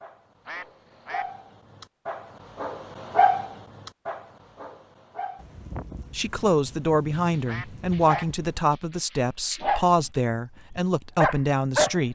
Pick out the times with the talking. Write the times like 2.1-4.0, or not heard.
6.2-12.1.